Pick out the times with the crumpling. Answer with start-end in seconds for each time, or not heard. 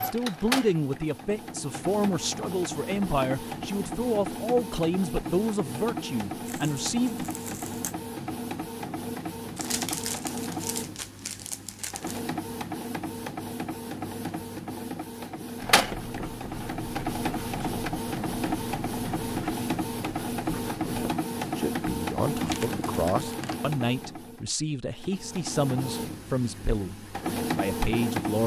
6.5-8.0, 9.6-12.2, 22.4-23.6.